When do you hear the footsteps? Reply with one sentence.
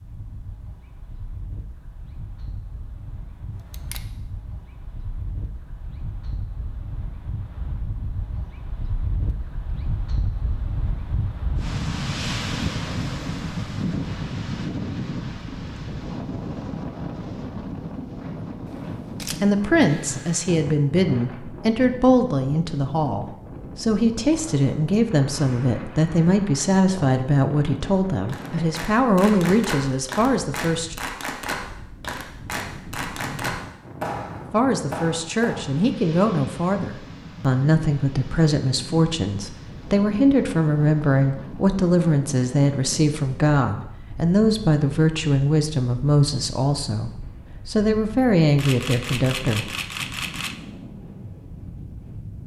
You can't hear the footsteps here.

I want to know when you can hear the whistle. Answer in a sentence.
The whistle can't be heard in this clip.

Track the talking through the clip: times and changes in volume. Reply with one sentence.
You can hear the talking from 19.4 to 30.9 s, at a steady volume; and from 34.5 to 49.7 s, at a steady volume.